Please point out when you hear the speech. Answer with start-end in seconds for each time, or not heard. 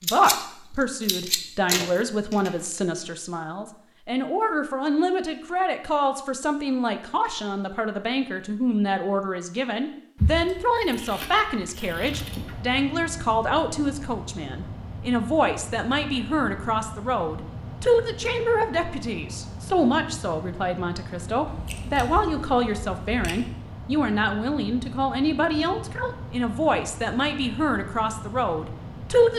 0.0-29.3.